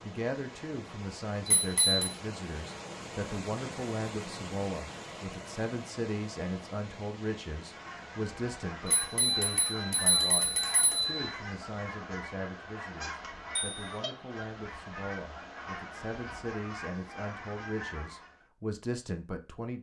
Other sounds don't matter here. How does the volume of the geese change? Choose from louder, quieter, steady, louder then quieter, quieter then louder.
steady.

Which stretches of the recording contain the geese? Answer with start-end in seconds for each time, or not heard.
7.6-18.4.